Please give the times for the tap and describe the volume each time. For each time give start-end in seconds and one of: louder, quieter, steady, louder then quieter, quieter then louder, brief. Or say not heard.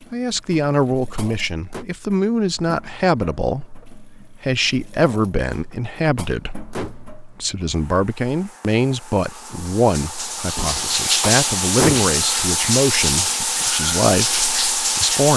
0.0-15.3 louder.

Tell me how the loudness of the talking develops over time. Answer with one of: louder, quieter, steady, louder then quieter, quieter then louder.
steady.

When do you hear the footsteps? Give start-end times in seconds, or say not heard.
not heard.